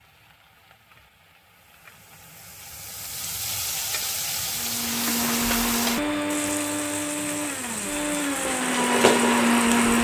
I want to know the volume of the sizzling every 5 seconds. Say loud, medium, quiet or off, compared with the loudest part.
medium, loud.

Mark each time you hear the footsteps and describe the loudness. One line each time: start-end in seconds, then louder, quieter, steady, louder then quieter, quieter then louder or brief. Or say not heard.
not heard.